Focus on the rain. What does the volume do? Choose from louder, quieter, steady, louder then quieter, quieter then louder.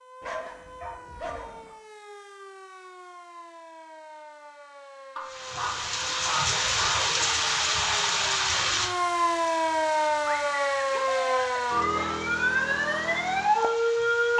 quieter.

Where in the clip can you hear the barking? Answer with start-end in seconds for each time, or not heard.
0.2-1.8, 5.2-7.0, 10.3-12.2.